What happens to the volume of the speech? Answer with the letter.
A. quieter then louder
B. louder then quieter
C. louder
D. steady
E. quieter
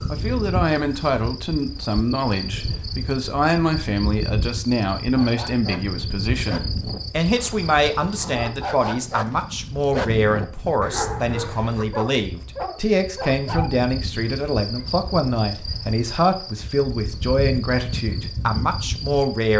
D.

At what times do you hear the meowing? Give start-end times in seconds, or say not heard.
not heard.